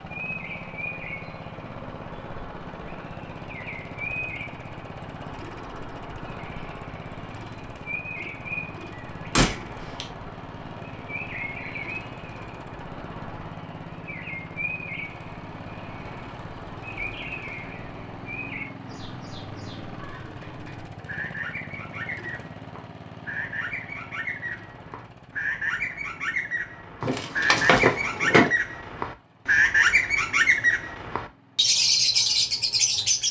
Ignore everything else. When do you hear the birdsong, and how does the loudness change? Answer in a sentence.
The birdsong can be heard from 0.0 to 33.2 s, getting louder.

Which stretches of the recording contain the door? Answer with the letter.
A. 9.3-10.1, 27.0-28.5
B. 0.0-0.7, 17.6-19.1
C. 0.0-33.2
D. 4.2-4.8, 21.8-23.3
A.